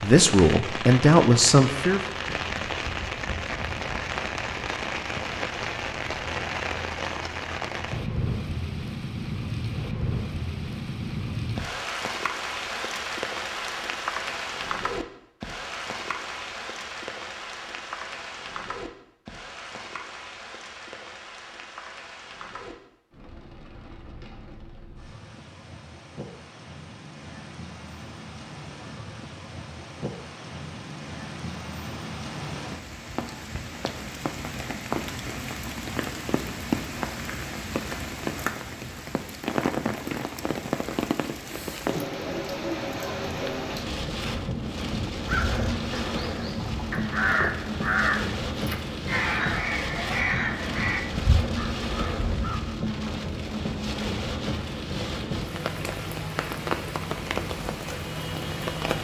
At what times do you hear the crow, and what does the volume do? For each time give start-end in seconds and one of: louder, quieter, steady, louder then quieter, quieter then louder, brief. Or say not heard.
45.2-52.6 louder then quieter.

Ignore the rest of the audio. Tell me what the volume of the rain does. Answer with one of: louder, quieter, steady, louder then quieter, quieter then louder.
quieter then louder.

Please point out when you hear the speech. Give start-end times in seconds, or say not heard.
0.0-2.0.